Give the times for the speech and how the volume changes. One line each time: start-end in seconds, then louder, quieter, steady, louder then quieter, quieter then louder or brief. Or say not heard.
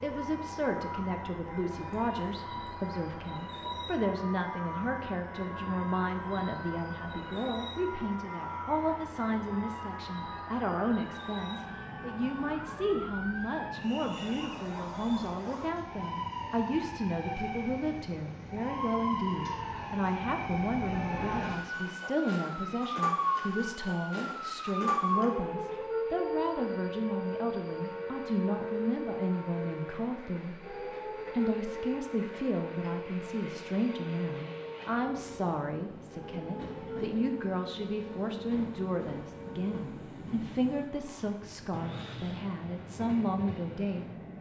0.0-44.0 steady.